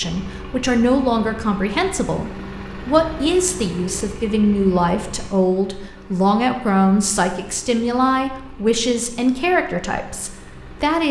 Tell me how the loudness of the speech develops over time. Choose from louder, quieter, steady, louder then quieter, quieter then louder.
steady.